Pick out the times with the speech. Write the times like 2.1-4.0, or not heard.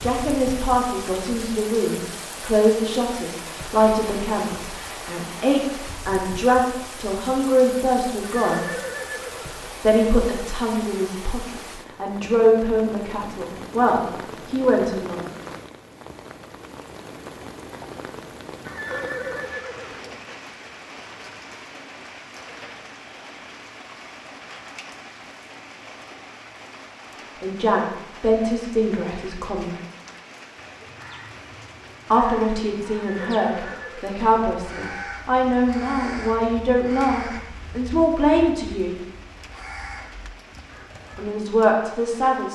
0.0-8.7, 9.8-15.3, 27.4-29.8, 32.1-39.0, 41.1-42.5.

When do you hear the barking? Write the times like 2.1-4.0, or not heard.
not heard.